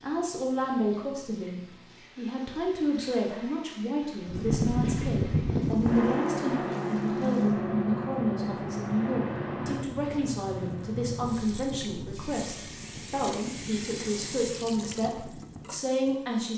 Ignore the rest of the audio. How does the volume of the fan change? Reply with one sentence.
The volume of the fan goes down.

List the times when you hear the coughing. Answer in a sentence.
You can't hear the coughing here.